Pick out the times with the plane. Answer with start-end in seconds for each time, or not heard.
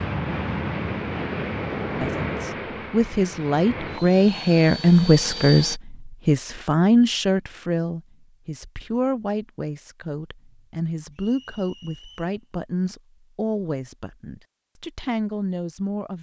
0.0-5.8.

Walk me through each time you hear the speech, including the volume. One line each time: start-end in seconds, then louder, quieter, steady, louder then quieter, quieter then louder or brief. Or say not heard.
1.9-16.1 quieter.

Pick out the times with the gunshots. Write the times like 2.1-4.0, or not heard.
not heard.